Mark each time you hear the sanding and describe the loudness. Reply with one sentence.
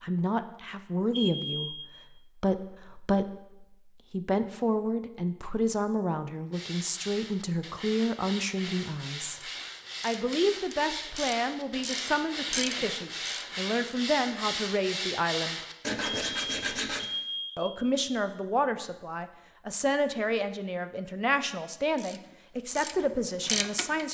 You can hear the sanding from 6.5 to 17.1 s, getting louder.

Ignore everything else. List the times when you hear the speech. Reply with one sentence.
You can hear the speech from 0.0 to 9.4 s, from 10.0 to 15.6 s and from 17.6 to 24.0 s.